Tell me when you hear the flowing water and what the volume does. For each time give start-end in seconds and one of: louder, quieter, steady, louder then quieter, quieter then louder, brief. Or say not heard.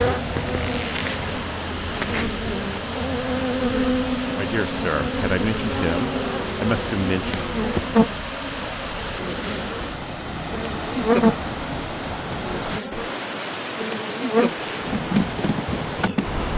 0.0-16.5 steady.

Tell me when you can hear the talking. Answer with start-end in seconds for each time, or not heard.
4.3-7.4.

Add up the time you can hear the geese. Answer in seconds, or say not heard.
not heard.